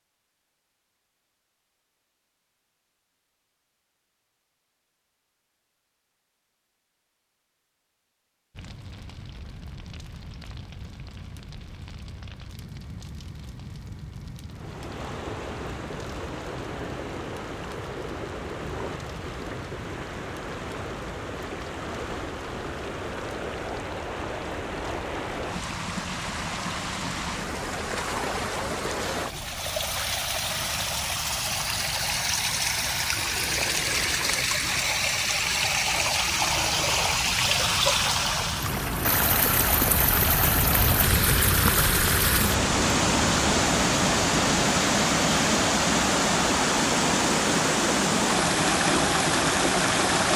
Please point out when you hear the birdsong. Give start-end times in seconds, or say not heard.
not heard.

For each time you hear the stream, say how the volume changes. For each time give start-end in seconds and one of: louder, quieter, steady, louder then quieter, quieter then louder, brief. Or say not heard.
14.4-50.3 louder.